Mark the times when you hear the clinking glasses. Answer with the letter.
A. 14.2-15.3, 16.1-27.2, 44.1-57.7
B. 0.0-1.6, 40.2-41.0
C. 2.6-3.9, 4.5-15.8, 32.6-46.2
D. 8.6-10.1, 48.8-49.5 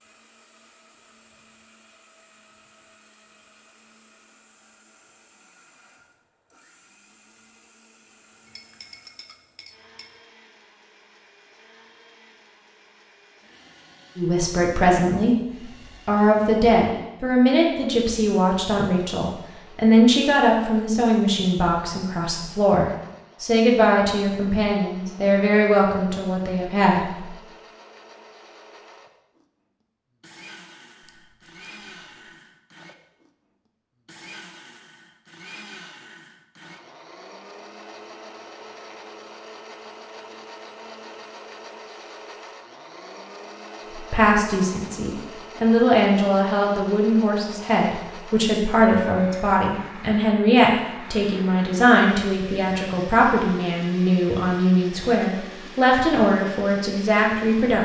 D.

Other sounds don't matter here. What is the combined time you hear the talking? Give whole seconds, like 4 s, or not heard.
26 s.